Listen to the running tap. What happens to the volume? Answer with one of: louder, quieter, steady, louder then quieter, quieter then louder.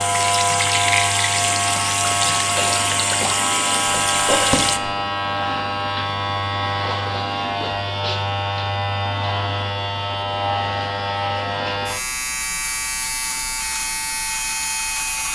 steady.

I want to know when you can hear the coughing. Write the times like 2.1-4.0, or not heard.
4.1-4.9.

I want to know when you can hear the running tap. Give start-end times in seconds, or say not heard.
0.0-4.8.